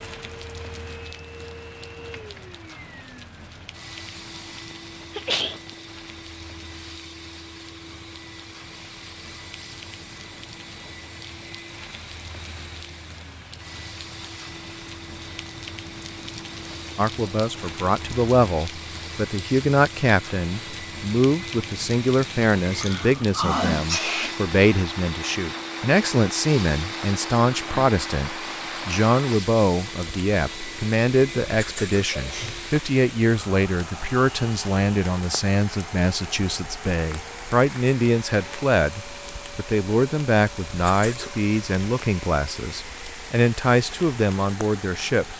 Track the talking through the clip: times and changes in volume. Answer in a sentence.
The talking can be heard from 16.9 to 45.3 s, at a steady volume.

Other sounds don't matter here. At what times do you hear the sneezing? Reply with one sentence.
You can hear the sneezing from 4.7 to 5.6 s, from 22.6 to 24.4 s and from 32.1 to 32.7 s.